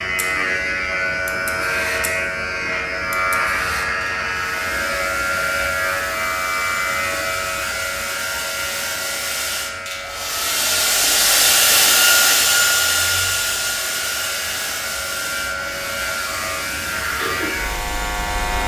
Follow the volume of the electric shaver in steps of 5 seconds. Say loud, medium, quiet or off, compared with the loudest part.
loud, loud, medium, loud.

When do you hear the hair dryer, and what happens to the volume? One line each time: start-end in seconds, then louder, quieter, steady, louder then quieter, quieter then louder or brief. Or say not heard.
0.0-18.6 louder then quieter.